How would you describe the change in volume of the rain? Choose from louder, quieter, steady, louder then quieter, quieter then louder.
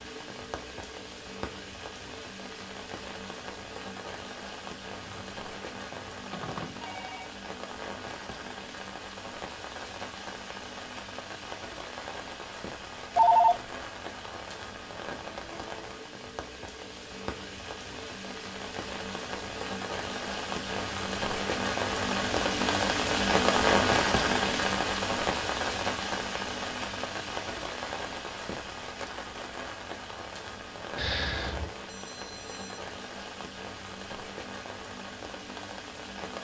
louder then quieter.